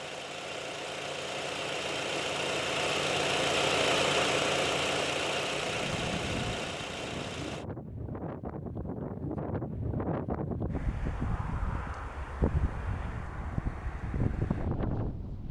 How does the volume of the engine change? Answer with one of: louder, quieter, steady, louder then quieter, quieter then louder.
louder then quieter.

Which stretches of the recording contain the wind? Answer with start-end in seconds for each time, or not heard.
5.6-15.4.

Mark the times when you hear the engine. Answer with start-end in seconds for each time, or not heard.
0.0-7.7.